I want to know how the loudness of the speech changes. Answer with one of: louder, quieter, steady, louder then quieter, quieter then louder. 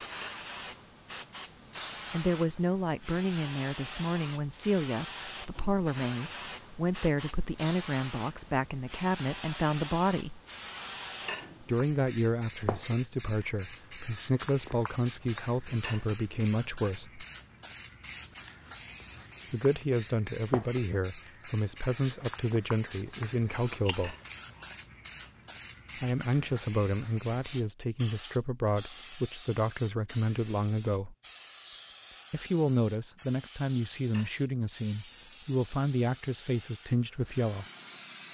steady.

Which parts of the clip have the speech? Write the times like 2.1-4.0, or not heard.
2.1-10.4, 11.6-17.2, 19.5-24.1, 25.9-31.1, 32.3-37.6.